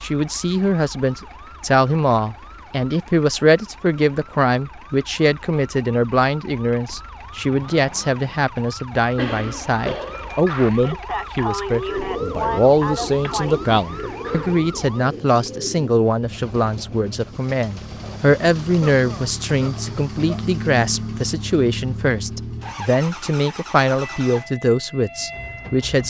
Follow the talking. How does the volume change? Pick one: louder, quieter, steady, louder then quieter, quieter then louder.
steady.